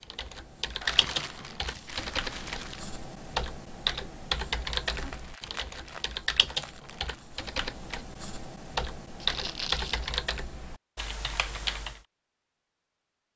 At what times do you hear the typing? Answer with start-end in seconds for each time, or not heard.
0.0-12.0.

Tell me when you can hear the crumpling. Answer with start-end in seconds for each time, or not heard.
0.8-2.8, 5.0-7.3, 9.2-10.2.